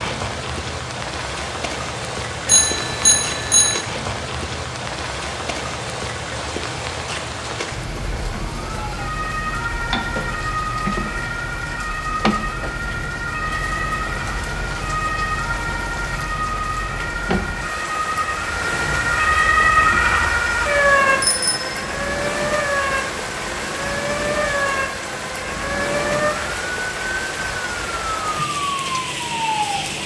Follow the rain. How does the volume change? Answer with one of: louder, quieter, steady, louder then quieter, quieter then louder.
steady.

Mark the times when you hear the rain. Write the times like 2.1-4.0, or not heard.
0.0-30.0.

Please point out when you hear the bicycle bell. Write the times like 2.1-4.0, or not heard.
2.5-3.9, 21.2-21.7.